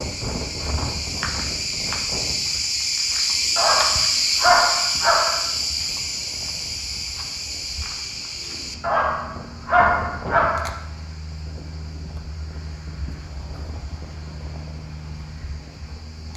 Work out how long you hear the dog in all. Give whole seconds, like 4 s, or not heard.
4 s.